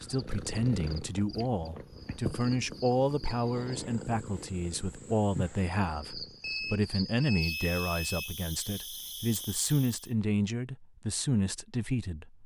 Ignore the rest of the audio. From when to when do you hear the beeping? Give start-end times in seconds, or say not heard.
6.4-8.3.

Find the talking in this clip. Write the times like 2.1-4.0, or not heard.
0.0-12.4.